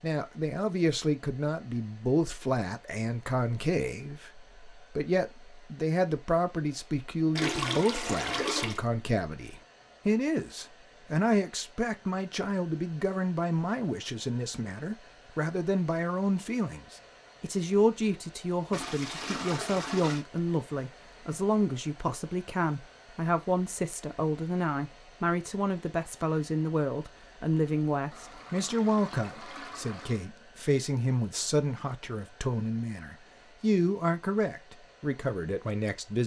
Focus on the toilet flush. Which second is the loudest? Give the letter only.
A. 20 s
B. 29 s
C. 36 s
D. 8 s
D.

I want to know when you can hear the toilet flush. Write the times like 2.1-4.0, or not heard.
7.3-8.8, 18.7-20.2, 28.1-30.3.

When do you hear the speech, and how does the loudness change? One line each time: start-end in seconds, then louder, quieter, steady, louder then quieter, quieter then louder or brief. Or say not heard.
0.0-36.2 steady.